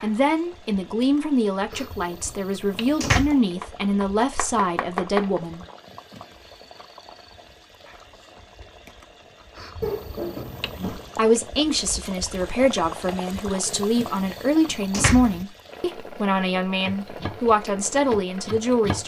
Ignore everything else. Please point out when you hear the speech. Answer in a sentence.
You can hear the speech from 0.0 to 5.7 s and from 10.8 to 19.0 s.